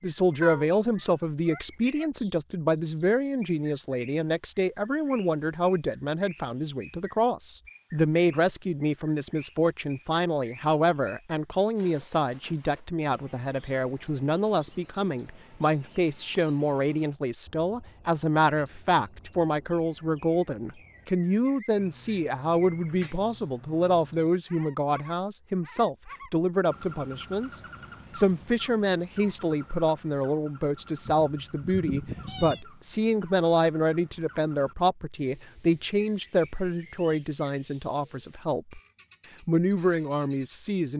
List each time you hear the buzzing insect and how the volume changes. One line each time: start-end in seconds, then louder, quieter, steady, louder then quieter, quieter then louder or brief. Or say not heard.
not heard.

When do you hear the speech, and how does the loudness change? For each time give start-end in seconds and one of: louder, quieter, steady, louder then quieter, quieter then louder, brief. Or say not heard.
0.0-38.8 steady
39.5-40.9 brief.